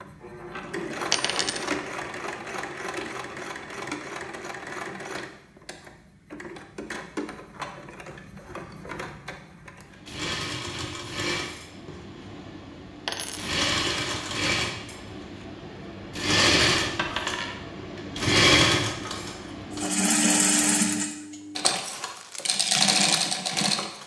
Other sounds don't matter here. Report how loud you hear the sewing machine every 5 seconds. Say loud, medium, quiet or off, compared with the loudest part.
medium, quiet, medium, loud, loud.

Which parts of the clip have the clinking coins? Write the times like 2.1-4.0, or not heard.
1.1-1.7, 13.1-13.6, 16.9-17.6.